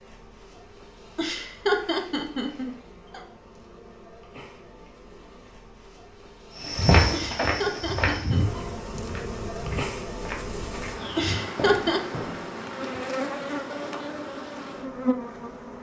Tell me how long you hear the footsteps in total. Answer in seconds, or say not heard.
6 s.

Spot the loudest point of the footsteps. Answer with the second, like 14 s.
7 s.